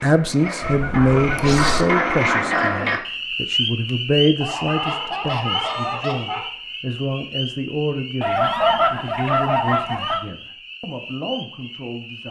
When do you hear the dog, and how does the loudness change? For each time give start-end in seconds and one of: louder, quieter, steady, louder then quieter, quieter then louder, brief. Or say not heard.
not heard.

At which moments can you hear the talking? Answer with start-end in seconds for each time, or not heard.
0.0-12.2.